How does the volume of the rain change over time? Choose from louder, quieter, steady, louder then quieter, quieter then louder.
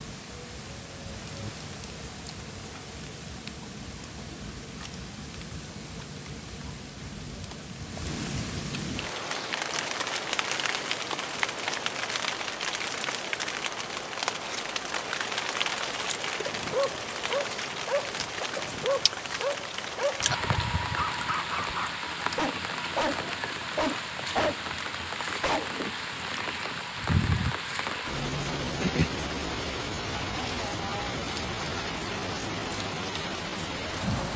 louder.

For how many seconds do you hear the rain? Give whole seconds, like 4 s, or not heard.
34 s.